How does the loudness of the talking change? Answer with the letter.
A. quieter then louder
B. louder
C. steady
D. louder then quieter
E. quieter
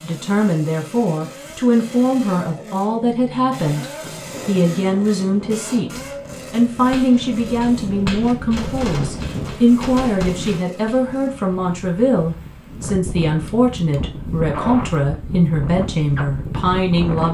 C.